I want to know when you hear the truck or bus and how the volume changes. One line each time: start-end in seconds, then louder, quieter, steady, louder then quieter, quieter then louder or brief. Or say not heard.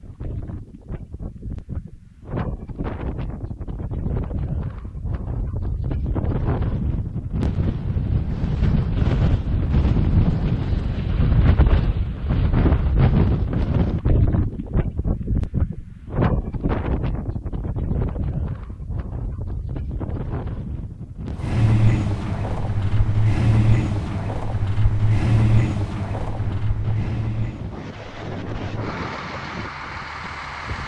21.3-30.8 quieter.